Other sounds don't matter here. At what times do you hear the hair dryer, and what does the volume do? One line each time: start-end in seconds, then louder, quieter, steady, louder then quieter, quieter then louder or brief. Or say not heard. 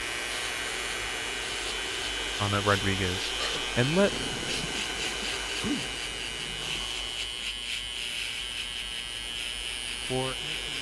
0.0-10.7 quieter.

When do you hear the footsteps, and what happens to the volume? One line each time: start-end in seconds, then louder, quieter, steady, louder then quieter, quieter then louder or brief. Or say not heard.
not heard.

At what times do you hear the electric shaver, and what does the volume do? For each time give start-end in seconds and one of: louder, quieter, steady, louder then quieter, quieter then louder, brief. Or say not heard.
0.0-10.7 steady.